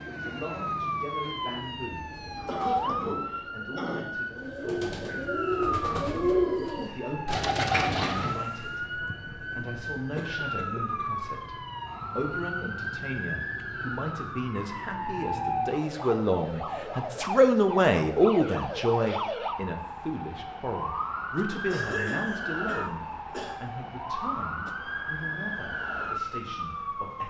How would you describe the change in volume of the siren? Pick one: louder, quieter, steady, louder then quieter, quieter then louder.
steady.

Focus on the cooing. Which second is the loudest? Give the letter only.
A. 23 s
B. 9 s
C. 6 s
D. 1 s
C.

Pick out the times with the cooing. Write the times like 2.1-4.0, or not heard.
1.2-8.4.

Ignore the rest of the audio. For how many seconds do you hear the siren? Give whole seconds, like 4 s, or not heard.
27 s.